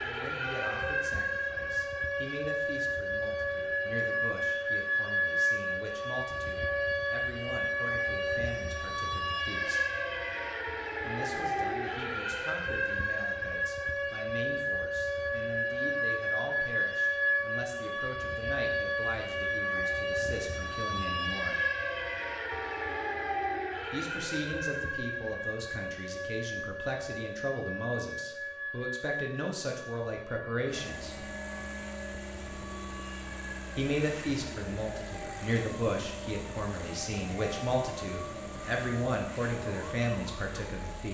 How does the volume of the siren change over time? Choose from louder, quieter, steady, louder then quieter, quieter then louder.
quieter.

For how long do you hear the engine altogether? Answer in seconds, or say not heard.
10 s.